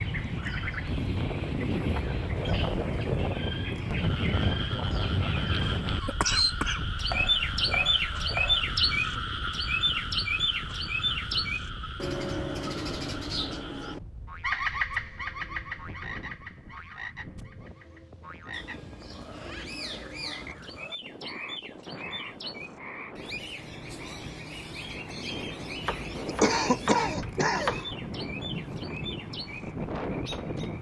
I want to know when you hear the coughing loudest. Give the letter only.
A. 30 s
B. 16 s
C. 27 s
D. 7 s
C.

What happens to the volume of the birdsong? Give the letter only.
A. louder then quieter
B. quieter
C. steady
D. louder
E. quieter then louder
A.